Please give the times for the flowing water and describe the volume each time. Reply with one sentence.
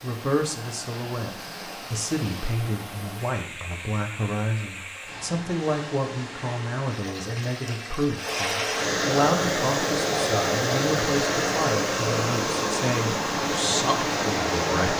You can hear the flowing water from 0.0 to 14.9 s, getting louder.